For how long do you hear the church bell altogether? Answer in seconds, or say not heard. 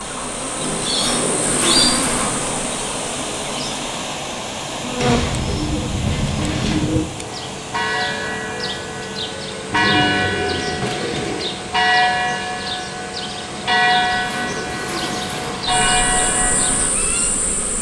10 s.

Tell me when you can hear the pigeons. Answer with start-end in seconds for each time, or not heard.
0.6-2.6, 5.0-7.0, 9.7-11.5, 13.8-15.8.